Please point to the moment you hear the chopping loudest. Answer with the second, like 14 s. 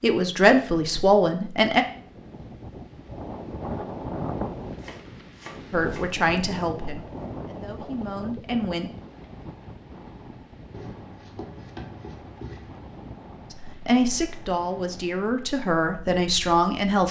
12 s.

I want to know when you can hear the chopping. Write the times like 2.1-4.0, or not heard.
4.8-6.1, 10.7-12.8.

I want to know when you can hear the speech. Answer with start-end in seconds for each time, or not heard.
0.0-1.9, 5.7-8.9, 13.5-17.0.